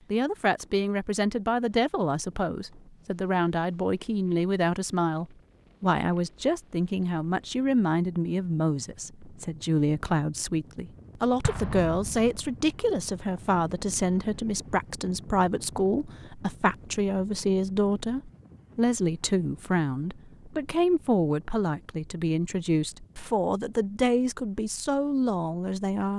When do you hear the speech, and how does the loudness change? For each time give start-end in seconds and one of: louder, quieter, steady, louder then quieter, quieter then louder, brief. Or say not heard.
0.1-26.1 steady.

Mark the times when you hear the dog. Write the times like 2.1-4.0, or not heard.
not heard.